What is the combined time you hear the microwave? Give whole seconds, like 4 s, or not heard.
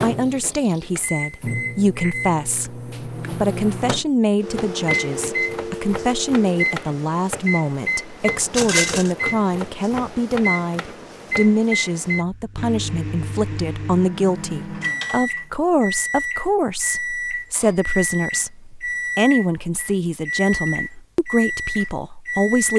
23 s.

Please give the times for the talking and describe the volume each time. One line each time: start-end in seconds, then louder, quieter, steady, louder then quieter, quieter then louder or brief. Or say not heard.
0.0-22.7 steady.